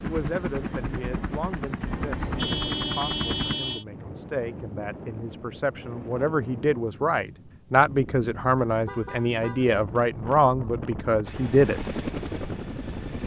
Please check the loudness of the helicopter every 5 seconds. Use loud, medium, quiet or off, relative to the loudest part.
loud, off, loud.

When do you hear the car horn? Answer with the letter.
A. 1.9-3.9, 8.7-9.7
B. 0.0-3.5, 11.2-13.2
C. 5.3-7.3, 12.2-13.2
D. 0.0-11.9
A.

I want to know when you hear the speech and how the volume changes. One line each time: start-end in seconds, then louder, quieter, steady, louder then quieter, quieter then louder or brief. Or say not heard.
0.0-11.9 louder.